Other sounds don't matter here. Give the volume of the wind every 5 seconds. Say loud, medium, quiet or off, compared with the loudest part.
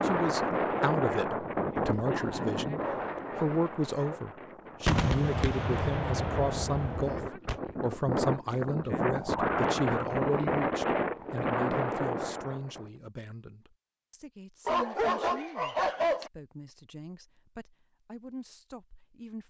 loud, loud, loud, off.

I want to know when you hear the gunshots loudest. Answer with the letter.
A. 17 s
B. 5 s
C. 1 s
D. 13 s
B.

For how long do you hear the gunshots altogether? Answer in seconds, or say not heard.
3 s.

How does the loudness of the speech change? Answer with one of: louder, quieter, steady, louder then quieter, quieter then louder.
quieter.